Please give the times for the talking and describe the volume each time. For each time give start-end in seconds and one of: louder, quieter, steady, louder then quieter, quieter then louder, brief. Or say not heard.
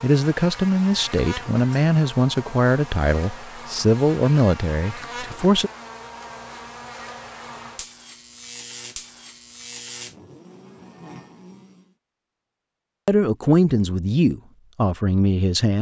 0.0-5.7 steady
13.1-15.7 brief.